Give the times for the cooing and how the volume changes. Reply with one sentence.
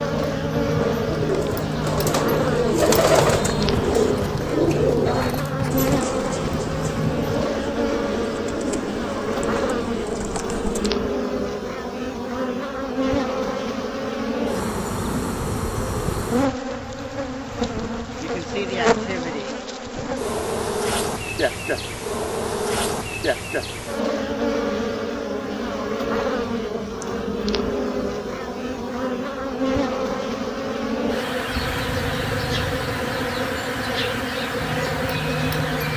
The cooing can be heard from 0.8 to 10.9 s, getting quieter.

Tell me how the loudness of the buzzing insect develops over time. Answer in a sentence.
The volume of the buzzing insect stays about the same.